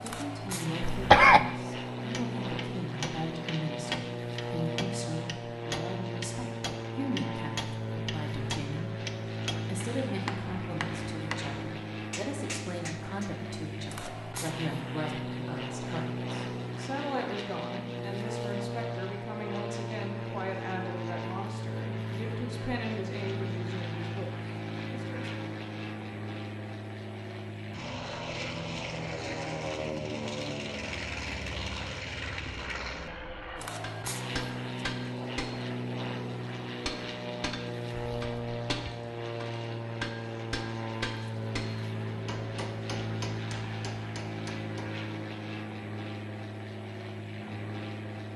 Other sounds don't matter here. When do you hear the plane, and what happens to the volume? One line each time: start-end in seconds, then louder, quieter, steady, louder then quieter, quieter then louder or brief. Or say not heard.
0.0-48.3 steady.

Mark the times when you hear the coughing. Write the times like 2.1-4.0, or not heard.
0.8-1.4.